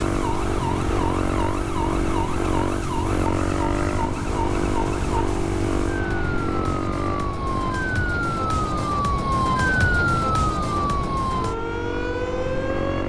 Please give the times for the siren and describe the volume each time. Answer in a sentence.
The siren can be heard from 0.0 to 13.0 s, getting louder.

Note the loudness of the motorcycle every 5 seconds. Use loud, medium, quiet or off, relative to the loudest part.
loud, loud, medium.